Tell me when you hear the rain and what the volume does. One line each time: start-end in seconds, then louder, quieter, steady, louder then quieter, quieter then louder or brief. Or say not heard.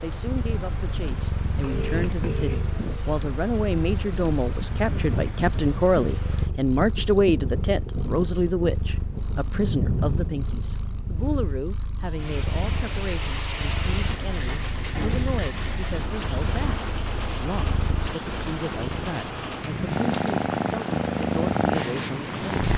0.0-22.7 steady.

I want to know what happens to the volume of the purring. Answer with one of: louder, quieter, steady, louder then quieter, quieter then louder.
louder.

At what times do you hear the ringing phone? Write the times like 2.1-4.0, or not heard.
1.6-2.6.